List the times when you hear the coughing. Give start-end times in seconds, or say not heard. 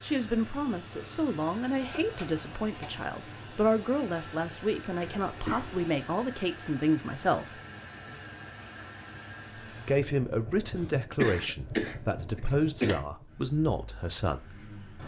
1.8-3.0, 5.0-5.9, 10.8-13.1.